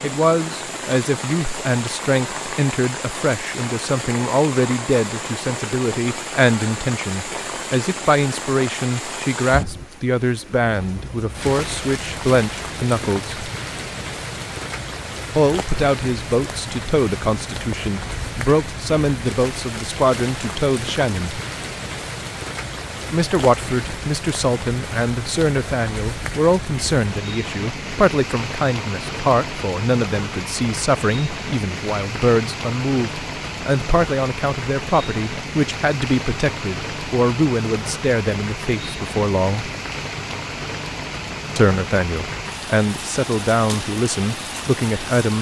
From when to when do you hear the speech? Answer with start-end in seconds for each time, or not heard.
0.0-13.4, 15.3-21.4, 23.1-39.7, 41.5-45.3.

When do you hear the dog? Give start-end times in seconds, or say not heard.
not heard.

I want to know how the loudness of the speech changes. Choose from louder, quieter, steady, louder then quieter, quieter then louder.
steady.